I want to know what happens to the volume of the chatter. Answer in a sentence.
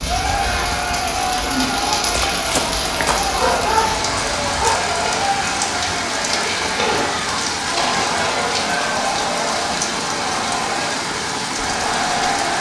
The volume of the chatter stays about the same.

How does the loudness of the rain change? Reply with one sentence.
The volume of the rain stays about the same.